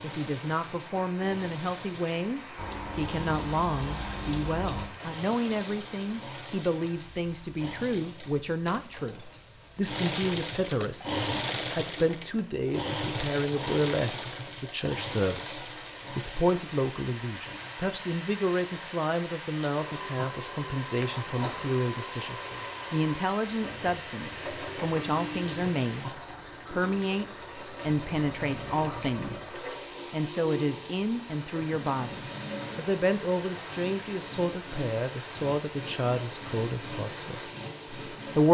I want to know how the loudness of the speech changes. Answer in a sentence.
The volume of the speech stays about the same.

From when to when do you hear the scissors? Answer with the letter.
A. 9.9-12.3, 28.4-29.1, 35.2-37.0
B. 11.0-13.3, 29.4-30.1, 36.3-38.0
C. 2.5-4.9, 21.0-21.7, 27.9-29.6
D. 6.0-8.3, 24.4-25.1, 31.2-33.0
C.